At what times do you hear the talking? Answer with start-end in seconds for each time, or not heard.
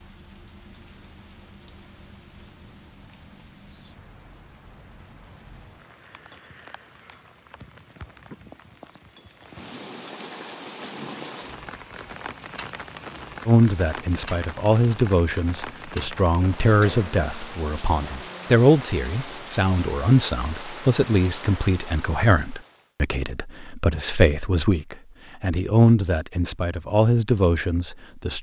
13.4-28.3.